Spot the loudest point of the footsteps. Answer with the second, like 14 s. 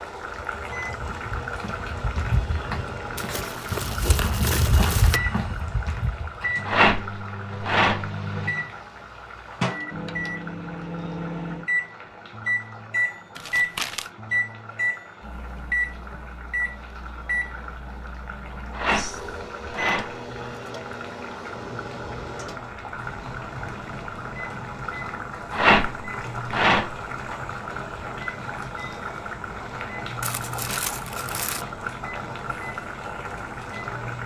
5 s.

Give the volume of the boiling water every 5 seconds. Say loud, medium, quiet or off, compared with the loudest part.
loud, medium, medium, medium, loud, loud, loud.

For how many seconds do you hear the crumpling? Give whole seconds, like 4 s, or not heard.
4 s.